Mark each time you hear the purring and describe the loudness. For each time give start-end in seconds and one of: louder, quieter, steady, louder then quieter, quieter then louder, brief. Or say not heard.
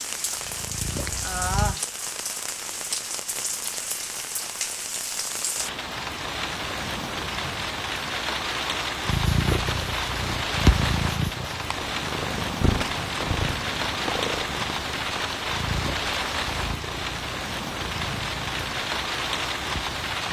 0.1-1.8 brief
9.1-20.2 quieter.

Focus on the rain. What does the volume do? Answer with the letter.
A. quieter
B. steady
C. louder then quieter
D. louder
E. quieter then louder
B.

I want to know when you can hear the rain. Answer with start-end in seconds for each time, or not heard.
0.0-20.2.